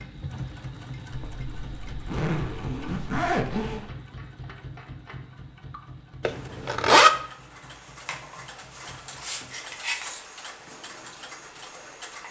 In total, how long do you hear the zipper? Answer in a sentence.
The zipper can be heard for 4 seconds in total.